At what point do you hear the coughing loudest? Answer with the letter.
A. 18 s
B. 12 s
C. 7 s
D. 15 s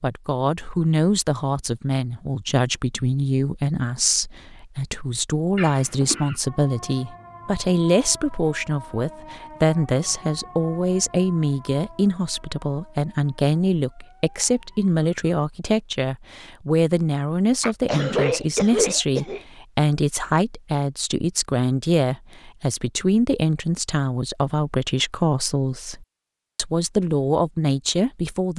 A.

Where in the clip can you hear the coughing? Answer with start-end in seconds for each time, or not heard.
5.5-6.3, 17.6-19.4.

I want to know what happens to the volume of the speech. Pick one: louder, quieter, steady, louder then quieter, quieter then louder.
steady.